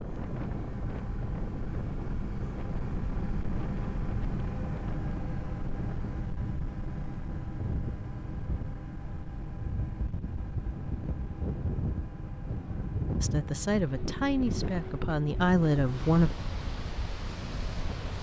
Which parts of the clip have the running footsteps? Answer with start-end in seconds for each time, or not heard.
not heard.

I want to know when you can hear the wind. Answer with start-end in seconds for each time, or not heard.
0.0-18.1.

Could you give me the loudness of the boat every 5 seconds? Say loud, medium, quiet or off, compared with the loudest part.
loud, loud, medium, medium.